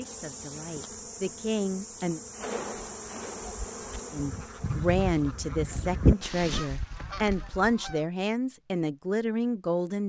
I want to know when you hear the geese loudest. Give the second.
6 s.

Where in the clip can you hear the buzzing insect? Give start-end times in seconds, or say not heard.
0.0-6.3.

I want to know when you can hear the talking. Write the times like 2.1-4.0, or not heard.
0.0-2.2, 4.1-10.0.